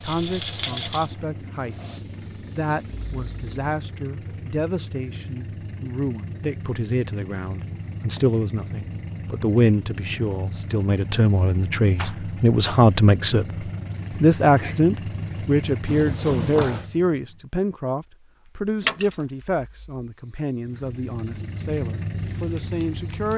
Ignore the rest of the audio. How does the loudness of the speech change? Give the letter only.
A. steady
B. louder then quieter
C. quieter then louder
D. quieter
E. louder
B.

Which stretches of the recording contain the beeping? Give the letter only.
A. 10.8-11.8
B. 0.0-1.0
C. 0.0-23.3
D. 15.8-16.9
D.